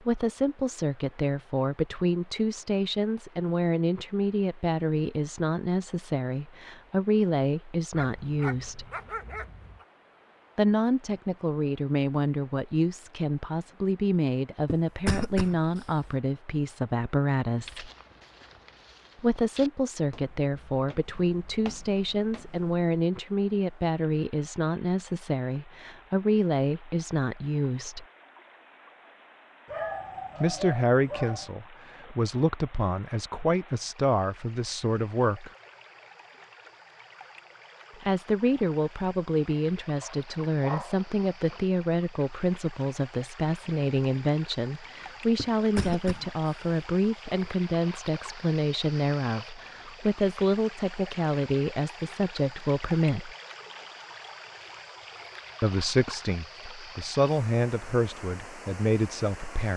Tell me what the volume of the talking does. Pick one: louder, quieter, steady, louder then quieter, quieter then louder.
steady.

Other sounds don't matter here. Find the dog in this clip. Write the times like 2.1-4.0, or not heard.
7.9-9.8, 29.6-31.5, 40.0-41.6.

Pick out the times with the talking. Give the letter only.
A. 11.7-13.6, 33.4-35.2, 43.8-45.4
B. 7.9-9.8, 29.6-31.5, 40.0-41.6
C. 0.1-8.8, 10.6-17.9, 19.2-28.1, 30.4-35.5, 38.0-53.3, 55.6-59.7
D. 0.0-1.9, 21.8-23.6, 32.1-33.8
C.